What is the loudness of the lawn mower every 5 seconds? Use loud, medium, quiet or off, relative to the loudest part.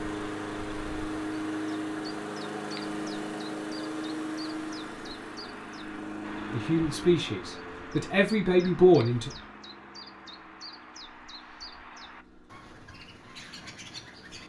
loud, medium, quiet.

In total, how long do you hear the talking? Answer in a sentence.
You can hear the talking for 3 seconds altogether.